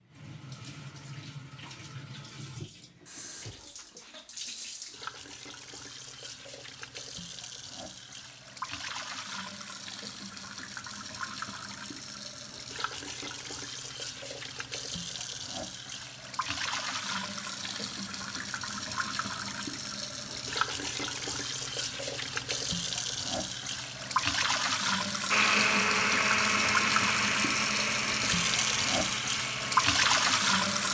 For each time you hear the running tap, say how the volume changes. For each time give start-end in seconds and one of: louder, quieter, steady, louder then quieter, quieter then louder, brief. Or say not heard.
0.0-30.9 louder.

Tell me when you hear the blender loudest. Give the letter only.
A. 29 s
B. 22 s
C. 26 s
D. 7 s
C.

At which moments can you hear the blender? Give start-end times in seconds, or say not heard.
25.3-30.9.